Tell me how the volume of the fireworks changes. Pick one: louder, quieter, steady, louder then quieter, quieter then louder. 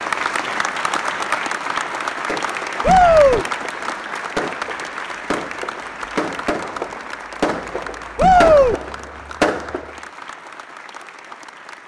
louder.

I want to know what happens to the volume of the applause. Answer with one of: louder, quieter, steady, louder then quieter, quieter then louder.
quieter.